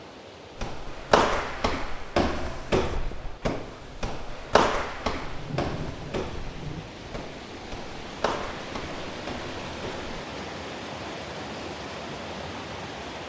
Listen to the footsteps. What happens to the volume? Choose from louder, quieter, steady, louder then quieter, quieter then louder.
quieter.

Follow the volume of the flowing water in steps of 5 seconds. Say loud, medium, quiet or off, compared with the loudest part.
medium, loud, loud.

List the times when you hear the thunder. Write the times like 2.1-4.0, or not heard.
5.2-7.2.